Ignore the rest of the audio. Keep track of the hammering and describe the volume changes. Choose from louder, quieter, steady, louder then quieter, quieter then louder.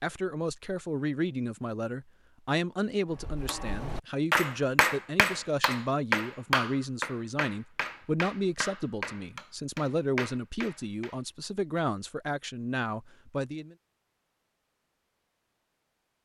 quieter.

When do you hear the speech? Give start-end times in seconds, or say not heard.
0.0-13.8.